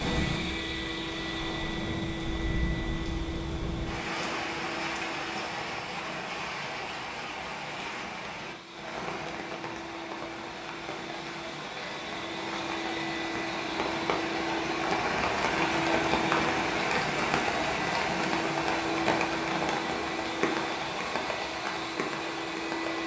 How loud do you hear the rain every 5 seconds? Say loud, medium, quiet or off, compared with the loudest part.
medium, medium, medium, loud, medium.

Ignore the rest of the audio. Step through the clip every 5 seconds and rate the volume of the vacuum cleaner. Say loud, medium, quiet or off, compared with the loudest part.
loud, medium, loud, loud, loud.